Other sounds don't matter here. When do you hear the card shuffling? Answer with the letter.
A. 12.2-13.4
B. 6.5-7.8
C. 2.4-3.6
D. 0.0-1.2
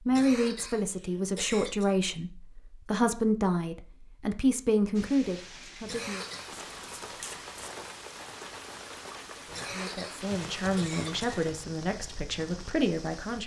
B.